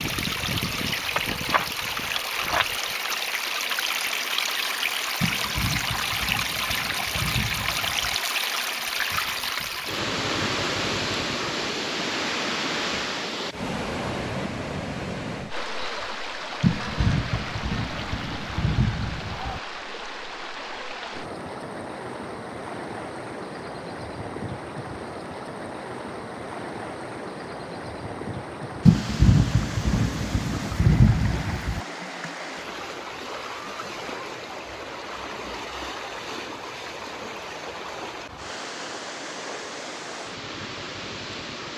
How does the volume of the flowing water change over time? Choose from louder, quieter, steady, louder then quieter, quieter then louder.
quieter.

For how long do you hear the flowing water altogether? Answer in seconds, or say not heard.
42 s.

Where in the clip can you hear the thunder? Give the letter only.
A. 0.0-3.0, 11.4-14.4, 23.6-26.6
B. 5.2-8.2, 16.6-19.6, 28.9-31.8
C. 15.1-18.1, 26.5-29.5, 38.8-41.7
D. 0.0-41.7
B.